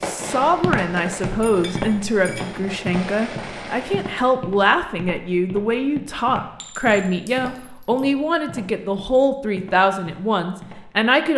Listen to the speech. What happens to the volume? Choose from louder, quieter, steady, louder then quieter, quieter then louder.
steady.